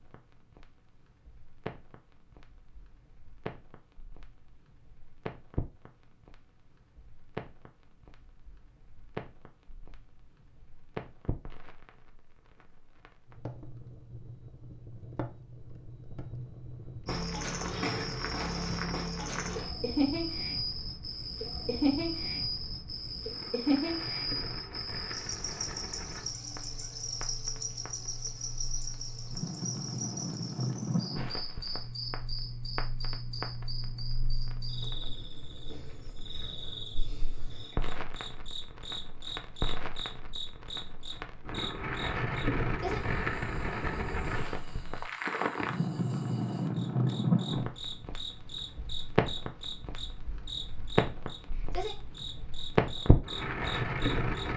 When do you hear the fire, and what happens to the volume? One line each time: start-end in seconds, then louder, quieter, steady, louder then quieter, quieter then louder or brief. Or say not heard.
0.0-54.5 louder.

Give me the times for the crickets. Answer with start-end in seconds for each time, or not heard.
17.1-54.5.